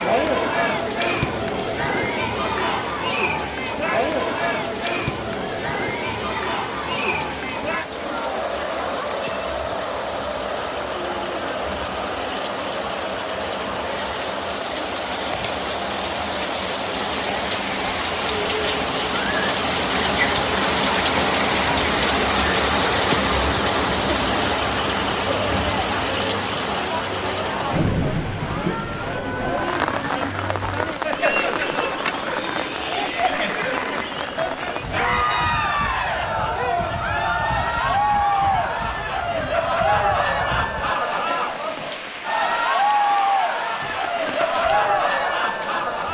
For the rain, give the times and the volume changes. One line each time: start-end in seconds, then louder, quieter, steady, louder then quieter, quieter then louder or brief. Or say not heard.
0.0-46.0 louder then quieter.